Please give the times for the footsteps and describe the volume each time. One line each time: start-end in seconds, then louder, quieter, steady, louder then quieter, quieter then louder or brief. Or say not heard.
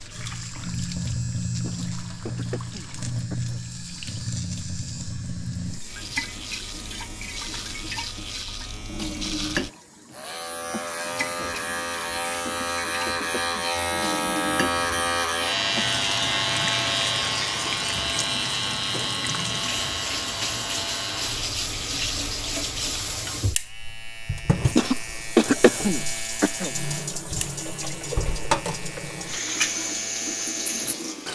not heard.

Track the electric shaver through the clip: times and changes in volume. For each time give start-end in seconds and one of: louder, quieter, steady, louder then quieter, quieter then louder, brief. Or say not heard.
0.0-31.2 louder then quieter.